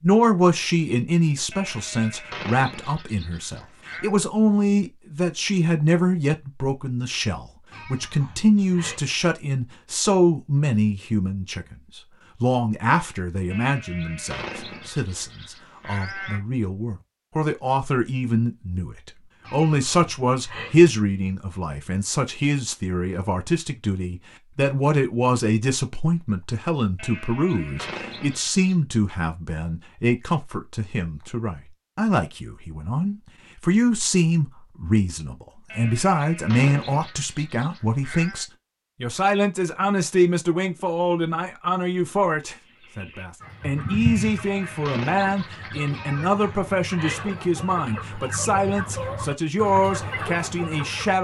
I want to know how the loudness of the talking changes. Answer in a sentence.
The volume of the talking stays about the same.